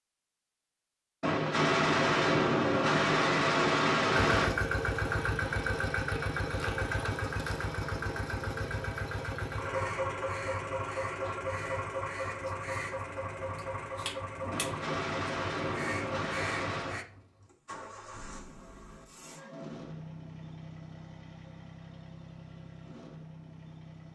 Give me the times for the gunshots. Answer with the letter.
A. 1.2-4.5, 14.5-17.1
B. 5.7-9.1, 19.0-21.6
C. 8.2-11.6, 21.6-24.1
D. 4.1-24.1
A.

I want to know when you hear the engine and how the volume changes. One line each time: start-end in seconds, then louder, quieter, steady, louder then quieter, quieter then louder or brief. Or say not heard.
4.1-24.1 quieter.